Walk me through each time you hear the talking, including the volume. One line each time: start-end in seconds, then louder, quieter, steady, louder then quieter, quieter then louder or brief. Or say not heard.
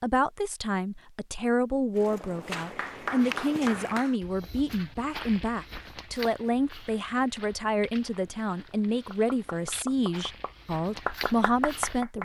0.0-12.1 steady.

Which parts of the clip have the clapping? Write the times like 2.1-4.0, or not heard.
2.5-4.2, 9.1-12.1.